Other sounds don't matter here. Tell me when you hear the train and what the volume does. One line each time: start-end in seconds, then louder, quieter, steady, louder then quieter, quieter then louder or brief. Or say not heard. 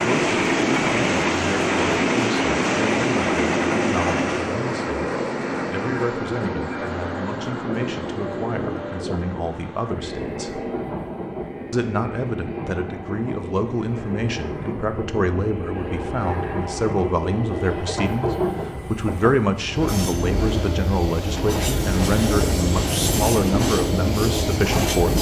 0.0-25.1 quieter then louder.